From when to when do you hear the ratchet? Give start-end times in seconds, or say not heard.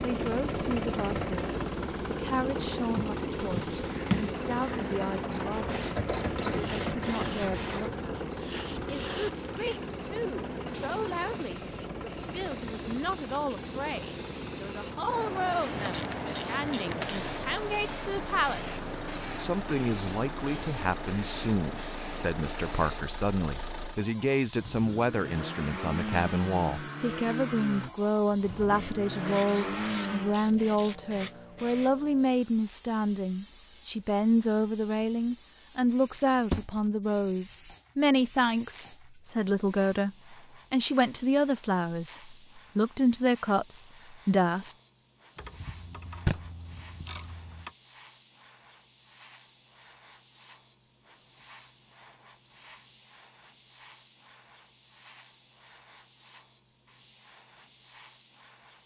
5.3-8.1, 15.8-17.3, 29.4-31.0, 45.4-47.7.